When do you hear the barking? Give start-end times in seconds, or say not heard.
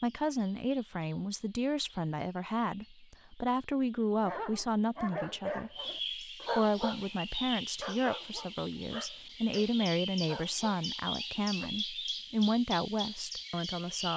4.2-11.7.